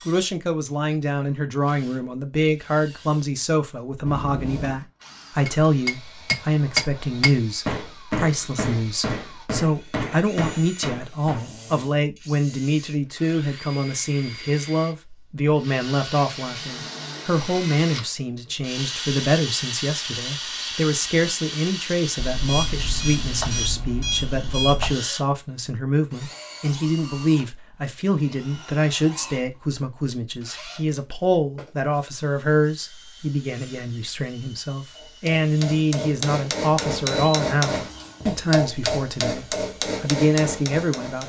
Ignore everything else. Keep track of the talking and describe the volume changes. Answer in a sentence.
The volume of the talking stays about the same.